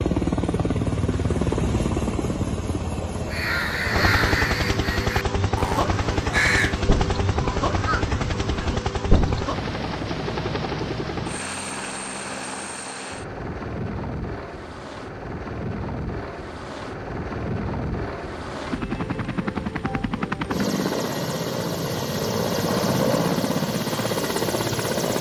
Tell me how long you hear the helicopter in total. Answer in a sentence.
The helicopter can be heard for 25 seconds in total.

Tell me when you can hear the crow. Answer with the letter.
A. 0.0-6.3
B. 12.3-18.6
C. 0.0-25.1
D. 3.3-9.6
D.